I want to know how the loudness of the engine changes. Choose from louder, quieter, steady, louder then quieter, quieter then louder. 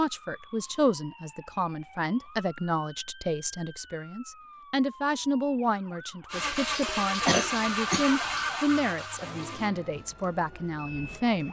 quieter.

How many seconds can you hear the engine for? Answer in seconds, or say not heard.
5 s.